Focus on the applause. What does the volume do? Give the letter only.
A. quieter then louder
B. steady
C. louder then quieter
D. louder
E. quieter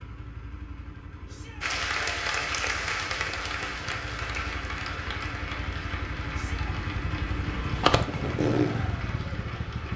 E.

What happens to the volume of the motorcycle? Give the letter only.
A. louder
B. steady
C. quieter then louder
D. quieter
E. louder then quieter
A.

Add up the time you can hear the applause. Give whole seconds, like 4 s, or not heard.
8 s.